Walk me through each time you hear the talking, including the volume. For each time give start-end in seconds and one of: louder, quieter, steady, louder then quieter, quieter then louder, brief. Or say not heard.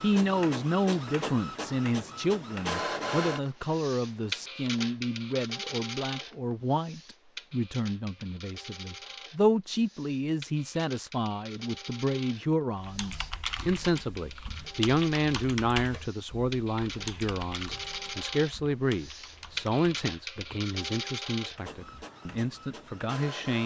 0.0-23.6 steady.